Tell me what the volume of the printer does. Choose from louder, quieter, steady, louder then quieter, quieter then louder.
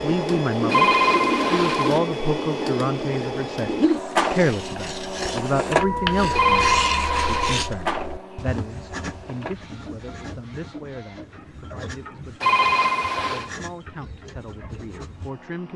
quieter.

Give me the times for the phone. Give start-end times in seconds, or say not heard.
0.7-2.0, 6.3-7.7, 12.4-13.5.